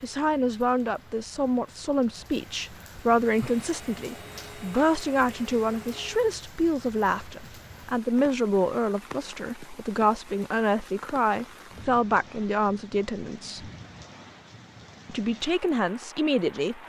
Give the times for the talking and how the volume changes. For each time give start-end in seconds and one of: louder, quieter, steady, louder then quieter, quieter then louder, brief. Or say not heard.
0.0-13.7 steady
15.1-16.8 brief.